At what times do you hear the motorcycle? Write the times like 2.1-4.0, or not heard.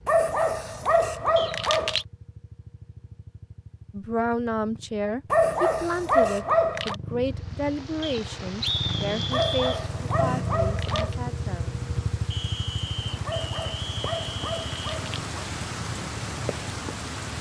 0.0-17.3.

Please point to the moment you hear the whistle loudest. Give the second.
9 s.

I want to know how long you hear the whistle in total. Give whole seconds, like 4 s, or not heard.
5 s.